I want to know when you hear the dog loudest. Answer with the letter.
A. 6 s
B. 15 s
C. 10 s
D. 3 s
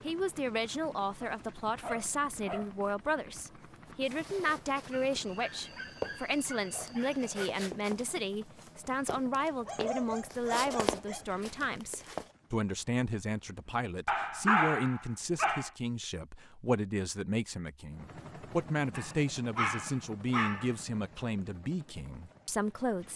B.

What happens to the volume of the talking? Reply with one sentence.
The loudness of the talking stays about the same.